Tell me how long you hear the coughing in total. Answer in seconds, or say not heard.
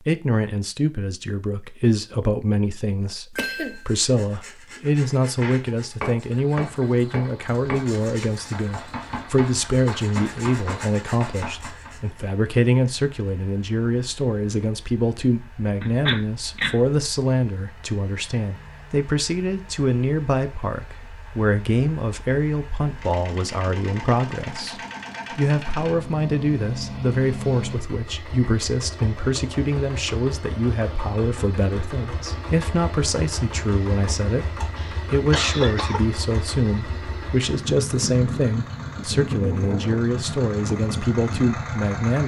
3 s.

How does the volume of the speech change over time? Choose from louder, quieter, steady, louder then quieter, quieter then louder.
steady.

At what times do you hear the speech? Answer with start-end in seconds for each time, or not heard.
0.0-42.2.